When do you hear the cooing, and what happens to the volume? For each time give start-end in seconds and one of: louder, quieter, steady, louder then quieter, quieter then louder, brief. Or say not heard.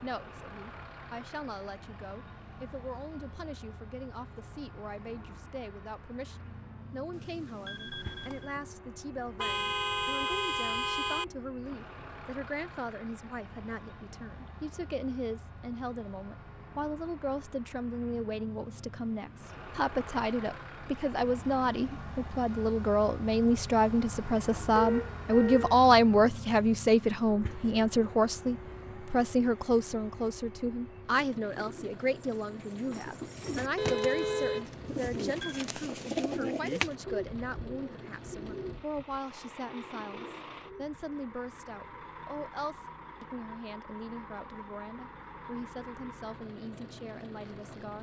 31.5-41.0 louder then quieter.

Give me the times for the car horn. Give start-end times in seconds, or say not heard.
9.3-11.2, 24.8-25.8, 33.8-34.9.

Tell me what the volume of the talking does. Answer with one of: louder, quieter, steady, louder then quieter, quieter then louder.
louder then quieter.